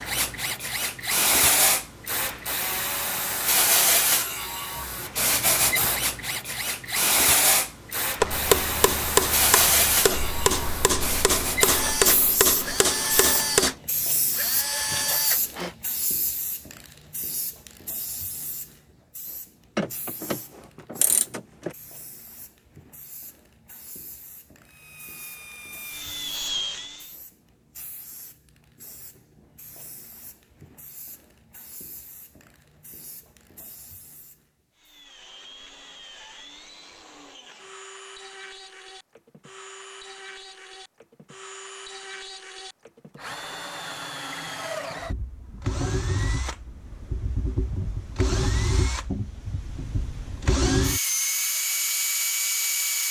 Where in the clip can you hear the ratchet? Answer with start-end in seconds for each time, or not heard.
19.8-21.8.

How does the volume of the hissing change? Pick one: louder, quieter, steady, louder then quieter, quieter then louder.
quieter.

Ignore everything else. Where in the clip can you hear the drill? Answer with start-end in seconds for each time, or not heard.
0.0-15.8, 24.6-27.1, 34.8-53.0.